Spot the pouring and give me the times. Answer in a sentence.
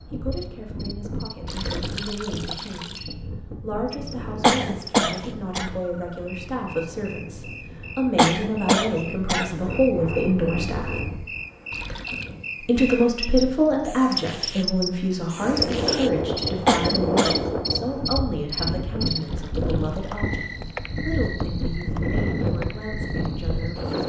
You can hear the pouring from 1.4 to 3.0 s, from 11.7 to 12.3 s and from 19.1 to 20.2 s.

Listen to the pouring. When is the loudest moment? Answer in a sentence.
The loudest moment of the pouring is at 2 seconds.